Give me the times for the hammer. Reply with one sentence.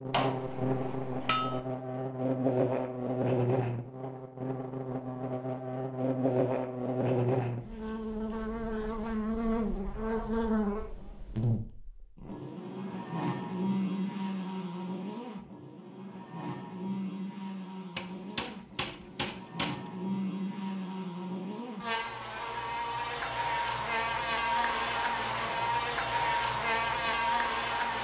The hammer can be heard from 0.1 to 1.6 s and from 17.9 to 19.8 s.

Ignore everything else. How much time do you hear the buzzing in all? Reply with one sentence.
The buzzing can be heard for 28 seconds in total.